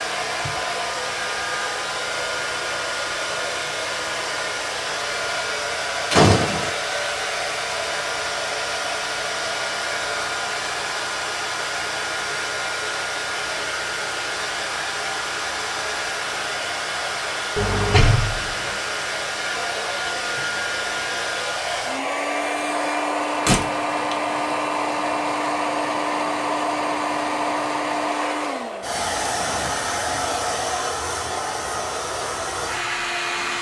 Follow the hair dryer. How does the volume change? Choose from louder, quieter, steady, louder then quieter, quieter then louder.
steady.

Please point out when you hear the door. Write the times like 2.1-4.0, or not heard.
6.1-6.7, 17.6-18.8, 23.4-24.1.